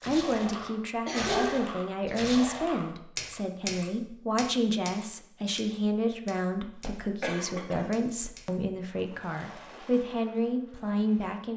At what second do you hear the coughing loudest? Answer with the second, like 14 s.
1 s.